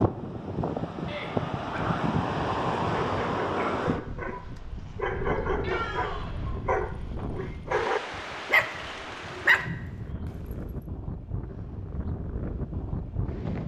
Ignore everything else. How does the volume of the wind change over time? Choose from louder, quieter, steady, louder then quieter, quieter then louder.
quieter.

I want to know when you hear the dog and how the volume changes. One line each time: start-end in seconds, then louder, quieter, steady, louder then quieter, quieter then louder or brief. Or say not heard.
3.0-10.1 louder.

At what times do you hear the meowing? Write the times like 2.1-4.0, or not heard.
1.1-2.0, 5.6-6.5, 9.4-10.2.